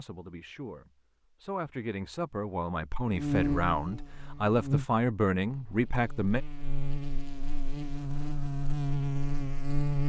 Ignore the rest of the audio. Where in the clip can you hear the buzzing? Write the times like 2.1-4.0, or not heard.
3.1-10.0.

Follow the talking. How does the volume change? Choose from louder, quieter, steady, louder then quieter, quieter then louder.
louder.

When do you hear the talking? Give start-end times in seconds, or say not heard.
0.0-6.4.